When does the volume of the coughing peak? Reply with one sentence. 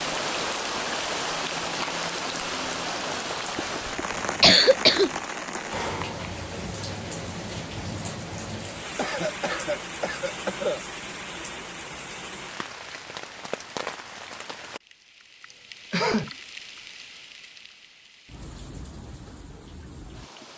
The volume of the coughing peaks at 5 seconds.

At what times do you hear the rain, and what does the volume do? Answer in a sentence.
The rain can be heard from 0.0 to 20.5 s, getting quieter.